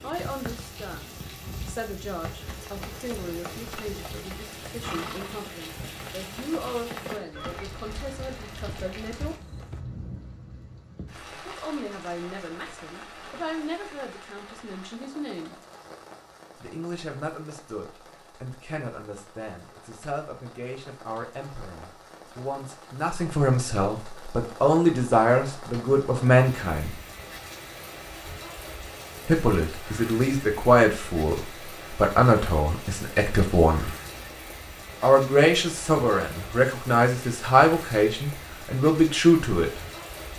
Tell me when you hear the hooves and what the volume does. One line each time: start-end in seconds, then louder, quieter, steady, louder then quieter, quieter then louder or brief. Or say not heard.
0.1-9.8 louder then quieter.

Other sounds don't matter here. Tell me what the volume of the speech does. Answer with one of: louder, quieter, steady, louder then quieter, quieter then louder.
louder.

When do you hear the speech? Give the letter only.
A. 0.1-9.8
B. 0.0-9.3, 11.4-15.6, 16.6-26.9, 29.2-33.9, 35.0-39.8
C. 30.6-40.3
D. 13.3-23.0
B.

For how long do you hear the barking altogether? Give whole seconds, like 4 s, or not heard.
not heard.